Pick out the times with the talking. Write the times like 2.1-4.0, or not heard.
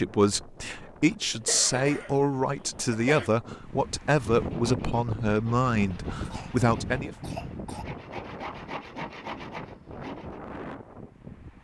0.0-7.2.